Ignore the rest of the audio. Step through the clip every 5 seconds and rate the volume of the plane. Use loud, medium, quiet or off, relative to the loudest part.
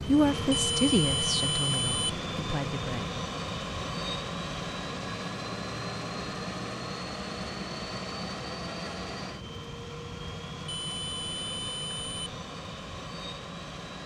loud, loud, medium.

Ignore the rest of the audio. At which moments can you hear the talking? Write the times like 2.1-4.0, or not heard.
0.1-3.1.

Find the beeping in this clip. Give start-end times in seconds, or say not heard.
0.5-2.2, 10.7-12.3.